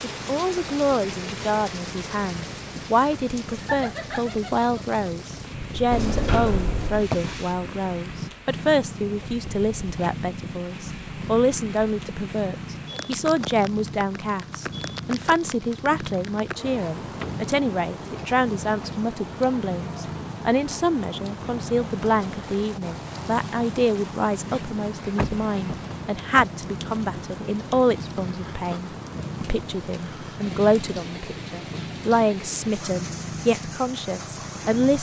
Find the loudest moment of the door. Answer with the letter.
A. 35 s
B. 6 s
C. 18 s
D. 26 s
B.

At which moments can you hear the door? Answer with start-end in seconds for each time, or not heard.
5.9-7.2, 17.0-17.4, 25.1-26.5.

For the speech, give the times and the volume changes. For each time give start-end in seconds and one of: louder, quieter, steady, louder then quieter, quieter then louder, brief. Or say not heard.
0.0-34.9 steady.